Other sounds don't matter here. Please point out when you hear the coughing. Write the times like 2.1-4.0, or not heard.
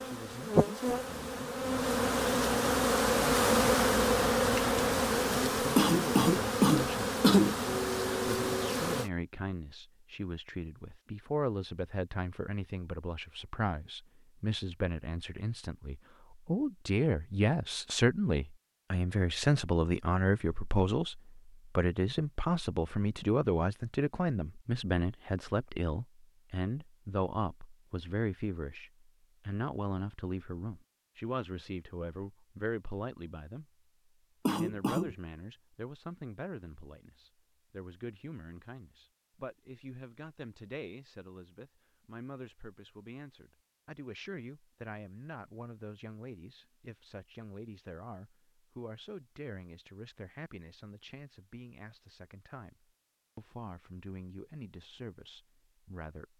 5.8-7.5, 34.5-35.1.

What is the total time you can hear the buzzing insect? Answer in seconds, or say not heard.
9 s.